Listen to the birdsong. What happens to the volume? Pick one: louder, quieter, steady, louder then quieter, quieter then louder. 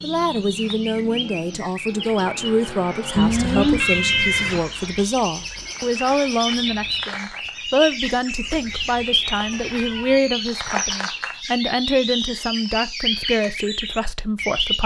louder.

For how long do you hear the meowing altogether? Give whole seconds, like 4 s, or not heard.
3 s.